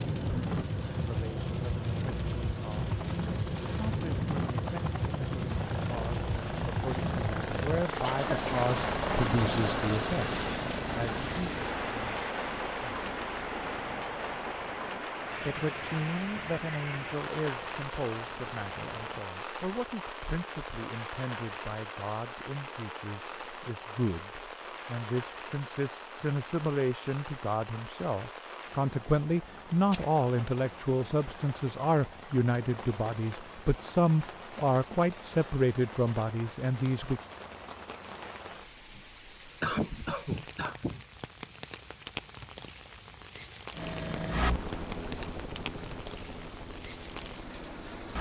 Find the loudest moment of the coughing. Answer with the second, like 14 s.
40 s.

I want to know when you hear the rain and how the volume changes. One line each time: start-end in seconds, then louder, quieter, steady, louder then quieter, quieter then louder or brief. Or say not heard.
0.0-48.1 quieter.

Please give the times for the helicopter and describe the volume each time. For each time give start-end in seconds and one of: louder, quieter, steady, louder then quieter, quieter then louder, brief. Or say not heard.
2.8-19.2 louder then quieter
43.7-48.1 quieter.